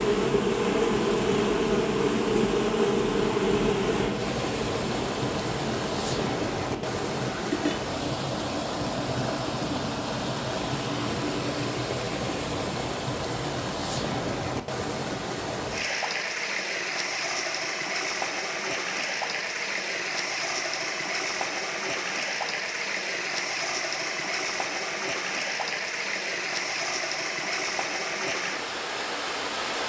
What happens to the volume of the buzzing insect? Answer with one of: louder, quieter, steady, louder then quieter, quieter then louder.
quieter.